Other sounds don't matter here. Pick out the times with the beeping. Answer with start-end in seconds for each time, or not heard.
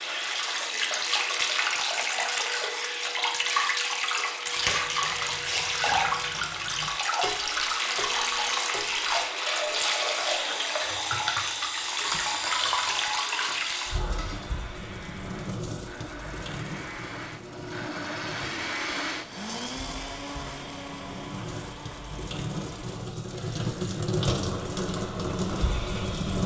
not heard.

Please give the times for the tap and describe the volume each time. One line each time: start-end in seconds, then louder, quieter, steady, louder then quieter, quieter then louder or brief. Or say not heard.
0.0-26.4 quieter then louder.